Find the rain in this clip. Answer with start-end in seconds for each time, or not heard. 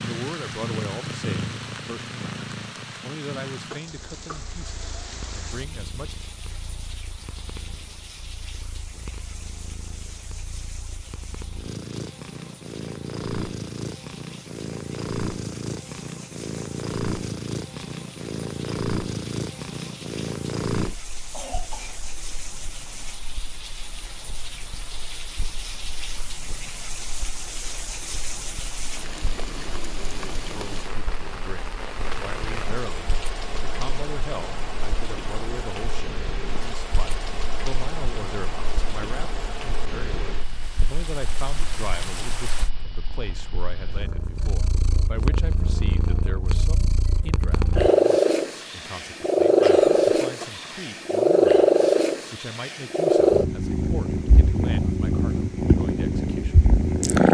0.0-42.7.